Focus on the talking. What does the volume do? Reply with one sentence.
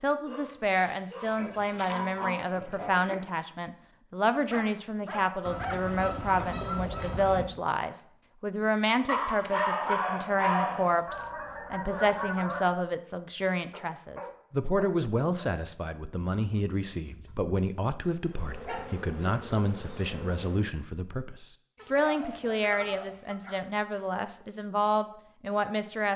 The volume of the talking stays about the same.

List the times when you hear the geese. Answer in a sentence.
You can hear the geese from 1.2 to 3.1 s, from 5.5 to 7.5 s, from 11.1 to 12.7 s, from 16.1 to 17.6 s and from 21.8 to 23.4 s.